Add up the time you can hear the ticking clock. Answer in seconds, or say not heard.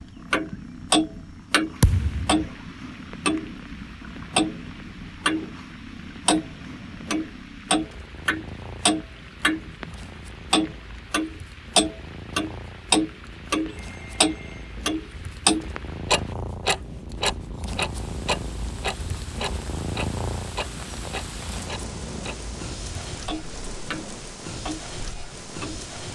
24 s.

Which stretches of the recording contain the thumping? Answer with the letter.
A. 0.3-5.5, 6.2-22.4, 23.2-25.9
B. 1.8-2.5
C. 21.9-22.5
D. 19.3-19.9
B.